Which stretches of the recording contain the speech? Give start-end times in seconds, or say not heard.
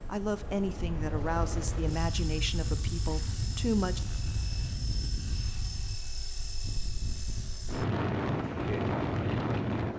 0.1-4.0.